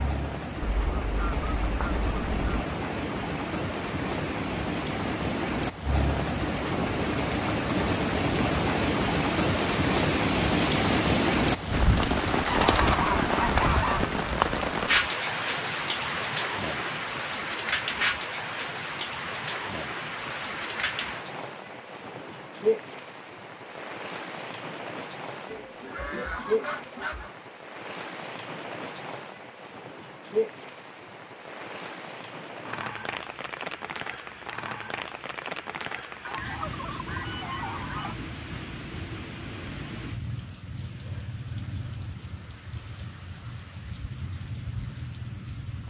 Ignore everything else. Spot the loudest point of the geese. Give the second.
13 s.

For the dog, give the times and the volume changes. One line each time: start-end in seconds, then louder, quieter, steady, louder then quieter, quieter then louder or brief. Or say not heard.
not heard.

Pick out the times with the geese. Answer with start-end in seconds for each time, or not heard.
0.6-2.6, 12.4-14.1, 25.5-27.4, 36.2-38.1.